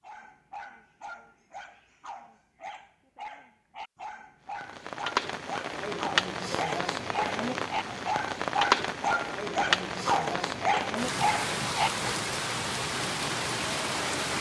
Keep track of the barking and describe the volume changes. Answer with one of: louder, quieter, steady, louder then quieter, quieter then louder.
louder.